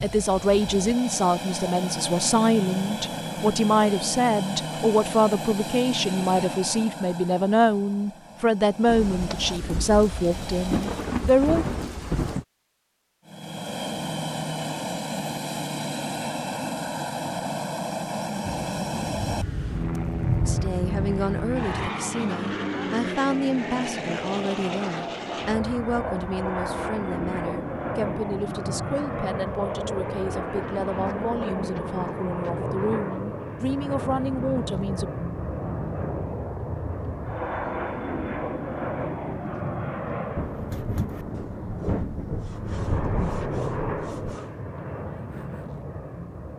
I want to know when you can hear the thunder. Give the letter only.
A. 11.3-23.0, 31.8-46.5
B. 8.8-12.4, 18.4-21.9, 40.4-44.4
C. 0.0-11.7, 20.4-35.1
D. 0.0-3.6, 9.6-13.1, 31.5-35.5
B.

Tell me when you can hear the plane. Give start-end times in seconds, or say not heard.
0.0-11.0, 13.2-40.7, 42.5-46.5.